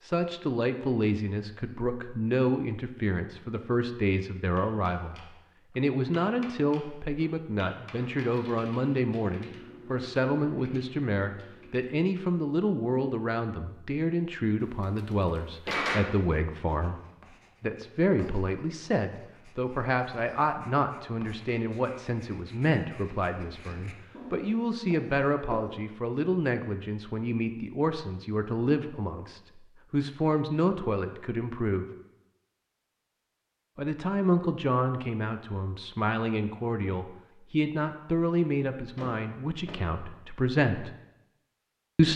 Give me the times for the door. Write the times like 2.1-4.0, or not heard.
8.2-9.0, 14.6-16.2, 39.0-39.9.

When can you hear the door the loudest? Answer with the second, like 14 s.
16 s.